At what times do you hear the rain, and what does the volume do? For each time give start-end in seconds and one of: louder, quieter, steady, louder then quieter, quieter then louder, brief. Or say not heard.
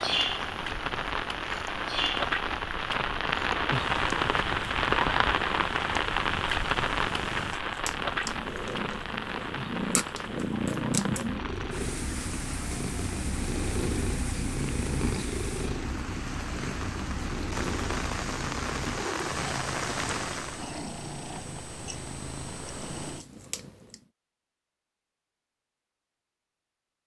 0.0-20.7 quieter then louder.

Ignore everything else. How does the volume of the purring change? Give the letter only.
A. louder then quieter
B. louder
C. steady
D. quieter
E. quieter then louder
A.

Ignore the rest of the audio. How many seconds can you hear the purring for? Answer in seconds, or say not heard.
24 s.